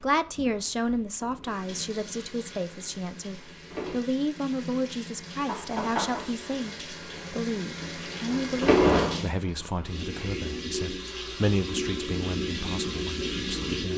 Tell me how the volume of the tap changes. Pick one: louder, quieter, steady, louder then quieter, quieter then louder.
louder.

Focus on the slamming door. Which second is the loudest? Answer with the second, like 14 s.
9 s.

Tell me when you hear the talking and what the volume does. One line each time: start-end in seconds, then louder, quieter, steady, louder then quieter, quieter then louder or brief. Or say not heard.
0.0-13.9 steady.